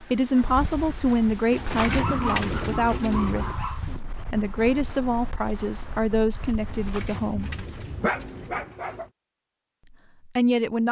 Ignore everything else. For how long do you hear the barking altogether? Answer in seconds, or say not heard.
5 s.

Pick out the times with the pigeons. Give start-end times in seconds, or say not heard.
1.5-3.5, 6.7-9.1.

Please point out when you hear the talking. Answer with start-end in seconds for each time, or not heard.
0.0-7.5, 10.2-10.8.